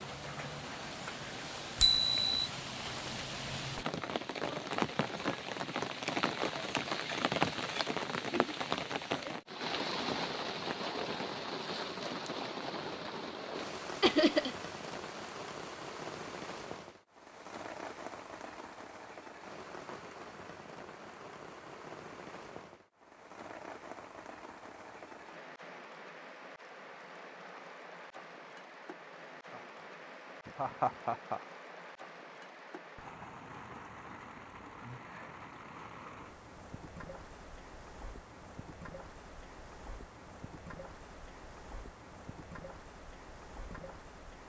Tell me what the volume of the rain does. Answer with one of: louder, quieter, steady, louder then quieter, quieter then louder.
quieter.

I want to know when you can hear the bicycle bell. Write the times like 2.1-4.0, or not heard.
1.8-2.5.